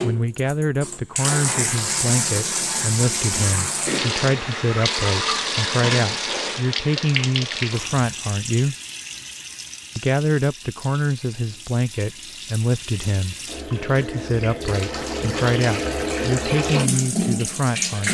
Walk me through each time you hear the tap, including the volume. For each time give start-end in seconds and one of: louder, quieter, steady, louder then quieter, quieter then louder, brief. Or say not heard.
0.0-18.0 quieter then louder.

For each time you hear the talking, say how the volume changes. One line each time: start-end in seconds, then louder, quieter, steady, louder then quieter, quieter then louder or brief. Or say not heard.
0.0-8.8 steady
9.9-18.0 steady.